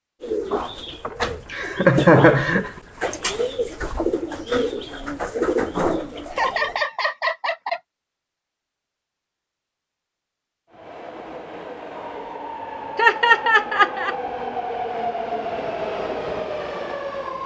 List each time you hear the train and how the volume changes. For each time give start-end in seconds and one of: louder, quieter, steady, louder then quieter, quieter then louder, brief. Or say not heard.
10.7-17.4 louder.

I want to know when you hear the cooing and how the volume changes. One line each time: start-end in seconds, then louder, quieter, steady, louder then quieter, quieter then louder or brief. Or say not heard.
0.2-6.8 louder.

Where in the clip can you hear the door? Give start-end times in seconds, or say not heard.
0.6-1.6.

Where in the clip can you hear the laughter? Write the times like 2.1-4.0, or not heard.
1.1-2.7, 6.3-7.8, 12.9-14.2.